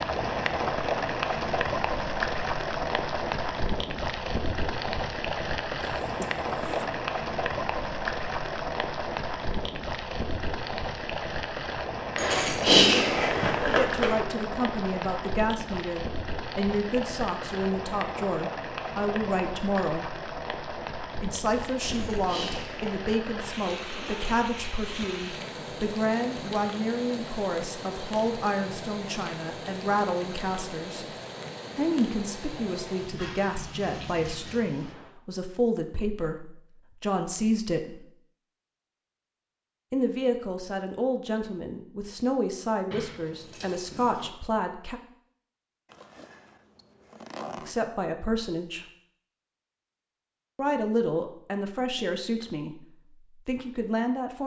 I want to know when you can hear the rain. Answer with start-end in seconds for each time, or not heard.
0.0-35.1.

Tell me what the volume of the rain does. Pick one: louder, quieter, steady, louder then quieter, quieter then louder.
quieter.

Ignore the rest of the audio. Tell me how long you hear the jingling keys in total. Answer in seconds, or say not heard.
5 s.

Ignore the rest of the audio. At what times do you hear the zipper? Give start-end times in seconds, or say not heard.
6.0-6.9, 23.9-24.4, 45.9-47.8.